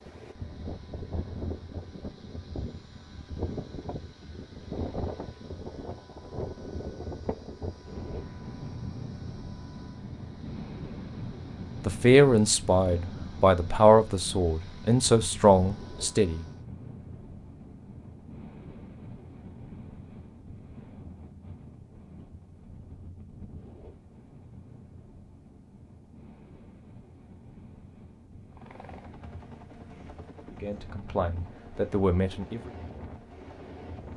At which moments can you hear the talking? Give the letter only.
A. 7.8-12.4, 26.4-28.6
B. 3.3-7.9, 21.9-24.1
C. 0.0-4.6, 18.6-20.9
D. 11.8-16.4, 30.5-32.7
D.